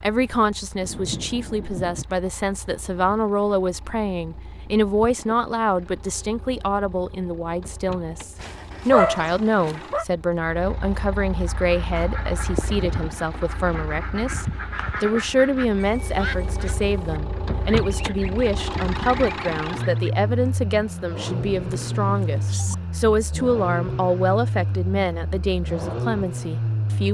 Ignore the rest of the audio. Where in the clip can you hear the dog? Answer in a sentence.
The dog can be heard from 8.4 to 10.1 s.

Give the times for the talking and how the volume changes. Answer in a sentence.
The talking can be heard from 0.0 to 27.0 s, at a steady volume.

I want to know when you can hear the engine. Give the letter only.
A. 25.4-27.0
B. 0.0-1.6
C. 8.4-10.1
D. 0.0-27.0
D.